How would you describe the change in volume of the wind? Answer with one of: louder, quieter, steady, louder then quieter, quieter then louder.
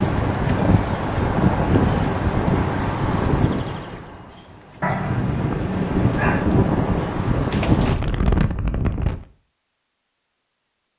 quieter then louder.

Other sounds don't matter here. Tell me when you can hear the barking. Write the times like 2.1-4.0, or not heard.
4.8-6.5.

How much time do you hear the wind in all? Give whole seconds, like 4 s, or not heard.
9 s.